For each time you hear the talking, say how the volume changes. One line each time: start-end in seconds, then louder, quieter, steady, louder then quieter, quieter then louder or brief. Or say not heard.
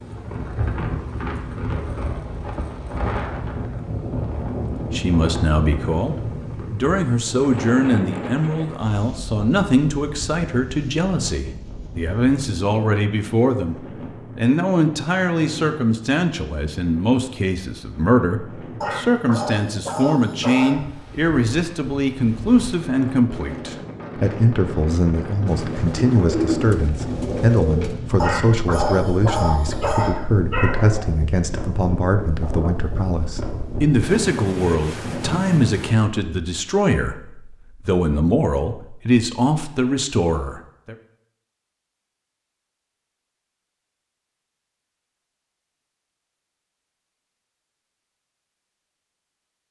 4.9-41.0 steady.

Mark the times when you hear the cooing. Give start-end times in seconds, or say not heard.
25.4-28.0.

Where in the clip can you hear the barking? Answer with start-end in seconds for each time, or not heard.
18.8-20.9, 28.1-31.1.